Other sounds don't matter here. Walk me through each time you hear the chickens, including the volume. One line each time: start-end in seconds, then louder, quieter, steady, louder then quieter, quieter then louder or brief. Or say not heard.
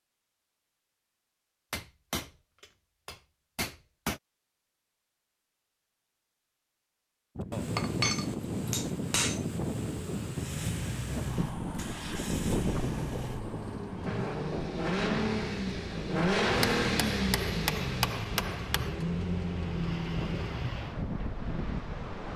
not heard.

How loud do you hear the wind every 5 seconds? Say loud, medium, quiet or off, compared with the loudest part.
off, loud, loud, medium, loud.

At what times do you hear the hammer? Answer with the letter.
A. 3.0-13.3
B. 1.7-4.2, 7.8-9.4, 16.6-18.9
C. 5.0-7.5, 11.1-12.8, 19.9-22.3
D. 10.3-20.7
B.